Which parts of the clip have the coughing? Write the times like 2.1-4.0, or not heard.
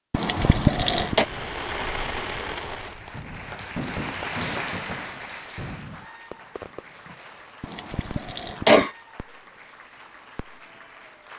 0.1-1.2, 7.6-8.9.